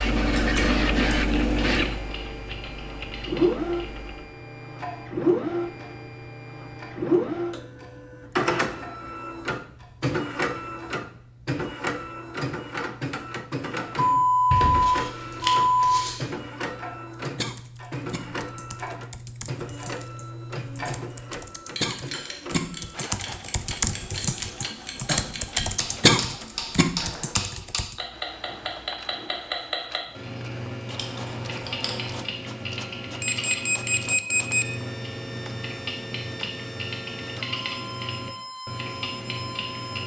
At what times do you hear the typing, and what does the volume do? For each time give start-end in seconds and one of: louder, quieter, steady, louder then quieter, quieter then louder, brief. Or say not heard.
0.0-4.3 quieter
17.2-27.9 louder.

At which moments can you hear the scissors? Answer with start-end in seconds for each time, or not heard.
0.0-1.9, 14.5-16.2, 30.9-32.2.